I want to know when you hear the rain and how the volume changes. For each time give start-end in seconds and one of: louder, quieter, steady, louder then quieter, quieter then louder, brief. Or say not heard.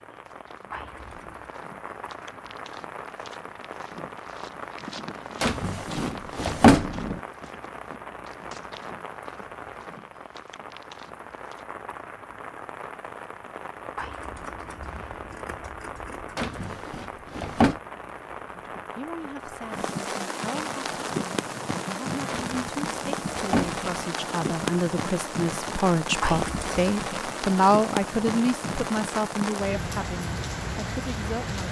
0.0-31.6 louder.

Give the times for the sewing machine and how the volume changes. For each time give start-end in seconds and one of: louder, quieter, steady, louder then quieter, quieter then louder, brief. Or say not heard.
not heard.